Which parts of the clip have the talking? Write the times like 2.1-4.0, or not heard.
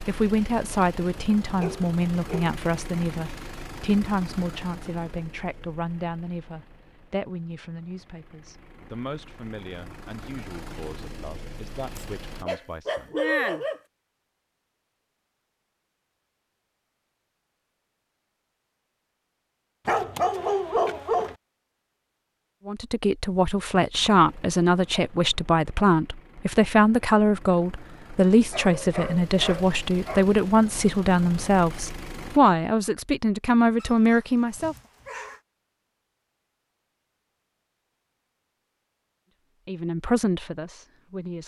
0.1-13.1, 22.6-34.8, 39.6-41.4.